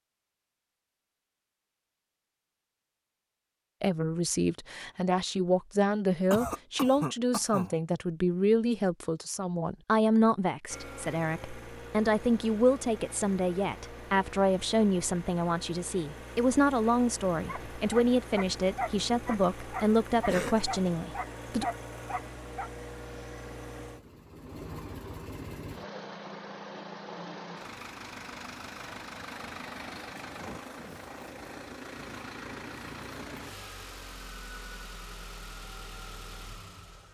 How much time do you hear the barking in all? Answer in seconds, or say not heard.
5 s.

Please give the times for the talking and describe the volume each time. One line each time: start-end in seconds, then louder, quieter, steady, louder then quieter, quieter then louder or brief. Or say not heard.
3.8-21.6 steady.